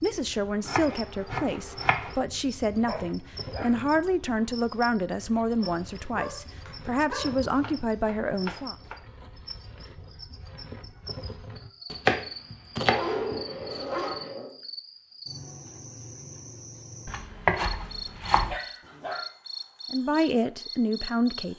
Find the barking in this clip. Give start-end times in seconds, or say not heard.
2.9-3.7, 5.6-7.3, 12.8-14.6, 18.5-19.2.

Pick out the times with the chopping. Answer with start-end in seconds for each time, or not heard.
0.7-2.1, 7.4-9.0, 11.9-13.8, 17.1-18.6.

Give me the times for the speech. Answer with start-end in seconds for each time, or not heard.
0.0-8.8, 19.9-21.5.